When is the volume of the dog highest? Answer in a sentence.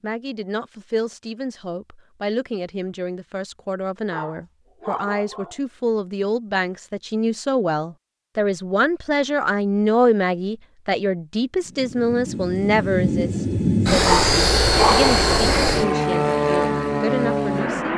The loudest moment of the dog is at 15 seconds.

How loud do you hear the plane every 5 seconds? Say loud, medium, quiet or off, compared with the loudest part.
off, off, loud, loud.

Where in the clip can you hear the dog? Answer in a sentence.
You can hear the dog from 4.0 to 5.6 s and from 14.0 to 15.3 s.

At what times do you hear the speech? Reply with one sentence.
You can hear the speech from 0.0 to 17.9 s.